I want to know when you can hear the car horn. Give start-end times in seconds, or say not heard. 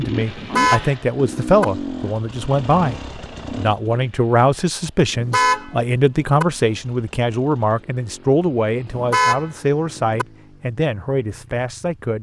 0.3-1.6, 5.2-6.5, 8.9-10.2.